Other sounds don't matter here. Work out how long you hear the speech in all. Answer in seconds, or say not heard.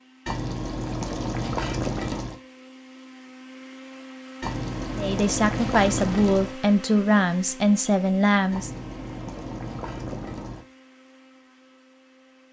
4 s.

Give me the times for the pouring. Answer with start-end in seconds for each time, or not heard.
0.2-2.4, 4.4-6.5, 8.5-10.7.